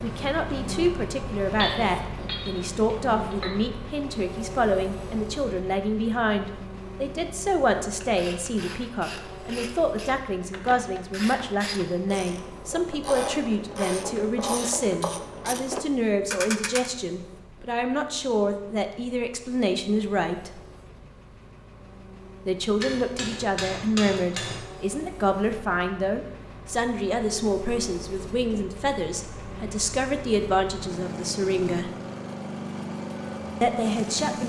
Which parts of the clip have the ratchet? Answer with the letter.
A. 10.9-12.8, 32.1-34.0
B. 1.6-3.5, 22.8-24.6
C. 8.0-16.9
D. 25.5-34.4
C.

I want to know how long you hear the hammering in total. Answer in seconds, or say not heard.
4 s.